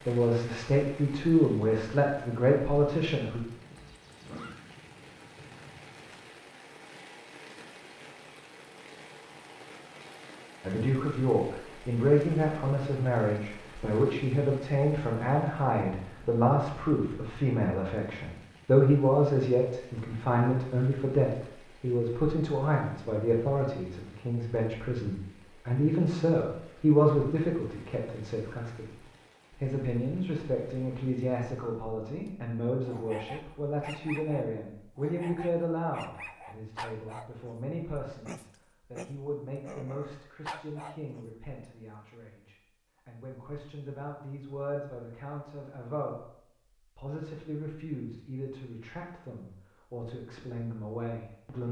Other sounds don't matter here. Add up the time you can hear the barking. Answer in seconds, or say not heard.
8 s.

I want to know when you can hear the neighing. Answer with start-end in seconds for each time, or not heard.
3.8-4.6.